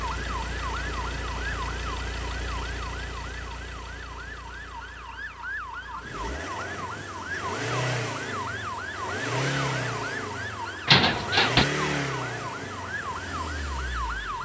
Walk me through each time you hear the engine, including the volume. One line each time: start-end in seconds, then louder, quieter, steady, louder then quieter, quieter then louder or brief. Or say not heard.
0.0-14.3 quieter then louder.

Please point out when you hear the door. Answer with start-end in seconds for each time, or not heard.
10.8-11.7.